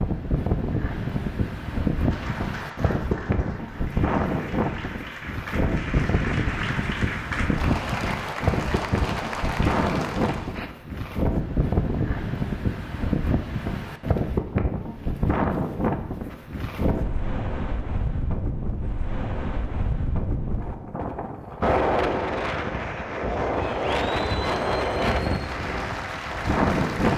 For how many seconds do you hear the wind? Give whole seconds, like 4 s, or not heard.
27 s.